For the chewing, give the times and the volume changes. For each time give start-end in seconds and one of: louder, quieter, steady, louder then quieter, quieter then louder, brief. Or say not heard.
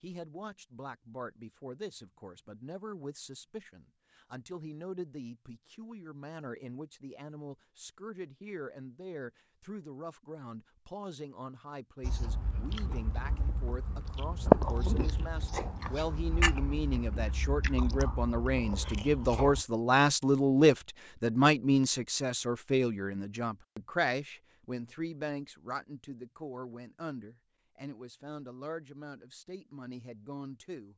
12.0-19.6 louder then quieter.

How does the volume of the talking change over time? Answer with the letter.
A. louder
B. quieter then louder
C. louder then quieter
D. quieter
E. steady
C.